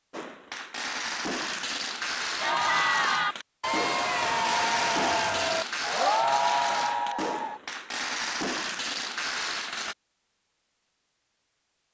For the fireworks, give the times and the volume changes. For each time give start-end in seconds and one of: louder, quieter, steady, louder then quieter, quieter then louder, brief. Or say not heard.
0.1-9.9 steady.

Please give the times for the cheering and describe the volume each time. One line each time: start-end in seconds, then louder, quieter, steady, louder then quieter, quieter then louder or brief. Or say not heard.
2.4-7.6 steady.